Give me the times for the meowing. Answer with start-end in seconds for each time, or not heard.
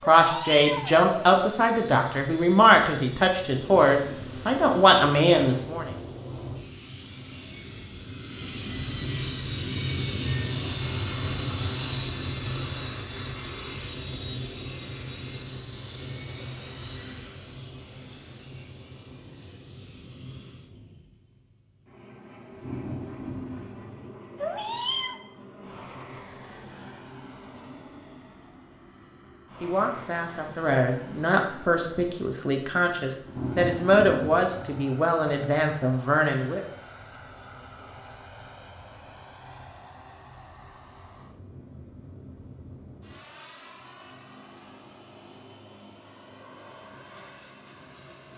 0.0-1.1, 24.4-25.1.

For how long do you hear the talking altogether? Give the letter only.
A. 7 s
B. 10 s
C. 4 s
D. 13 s
D.